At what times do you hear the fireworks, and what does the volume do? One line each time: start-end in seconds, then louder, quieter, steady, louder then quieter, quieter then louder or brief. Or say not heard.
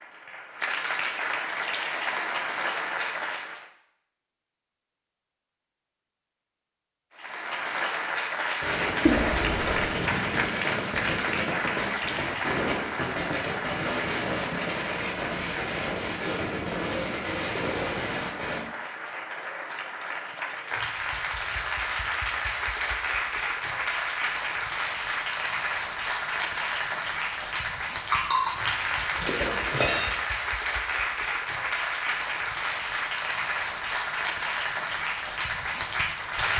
8.6-18.6 steady.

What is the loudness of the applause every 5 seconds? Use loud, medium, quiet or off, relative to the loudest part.
loud, loud, loud, medium, loud, loud, loud, loud.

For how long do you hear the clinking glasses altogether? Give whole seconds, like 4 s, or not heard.
2 s.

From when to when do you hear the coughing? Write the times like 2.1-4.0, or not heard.
9.1-9.9.